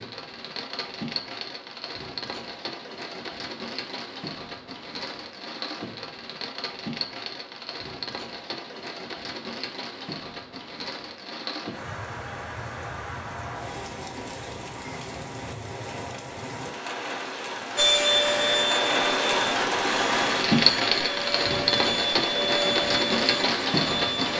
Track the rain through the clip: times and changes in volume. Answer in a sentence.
The rain can be heard from 0.0 to 24.3 s, getting louder.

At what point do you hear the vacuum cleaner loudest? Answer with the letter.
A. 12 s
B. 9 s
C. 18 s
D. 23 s
C.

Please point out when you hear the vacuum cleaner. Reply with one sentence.
The vacuum cleaner can be heard from 17.8 to 24.3 s.